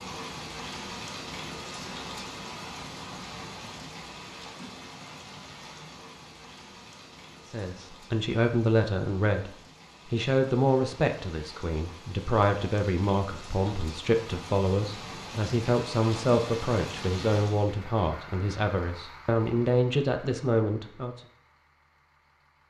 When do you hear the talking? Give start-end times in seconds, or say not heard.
7.5-9.5, 10.1-21.1.